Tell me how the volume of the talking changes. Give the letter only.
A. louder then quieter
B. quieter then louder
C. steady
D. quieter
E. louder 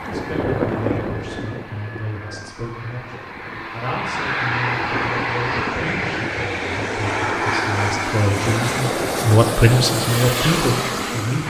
E.